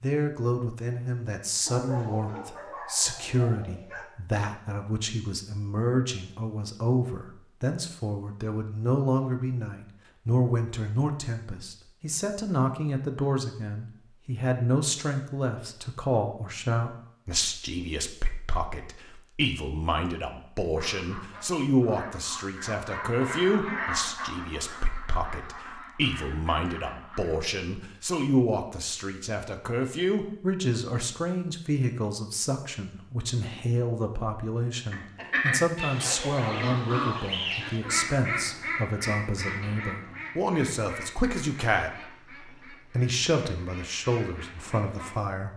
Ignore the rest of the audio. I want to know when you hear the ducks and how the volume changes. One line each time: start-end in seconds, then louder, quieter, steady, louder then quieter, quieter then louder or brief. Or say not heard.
20.8-27.4 louder then quieter
34.9-45.1 quieter.